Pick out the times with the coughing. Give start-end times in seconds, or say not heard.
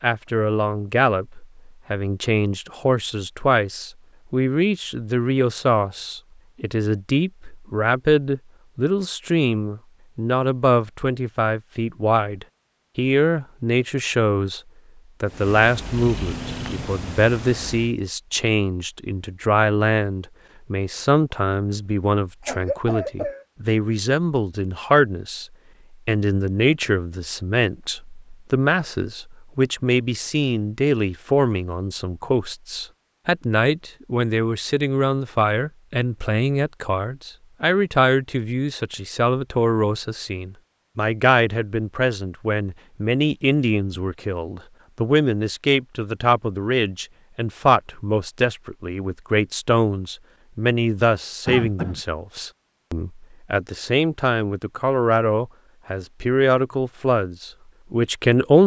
22.4-23.4, 51.5-52.0.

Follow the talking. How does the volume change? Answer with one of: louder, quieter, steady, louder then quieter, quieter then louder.
steady.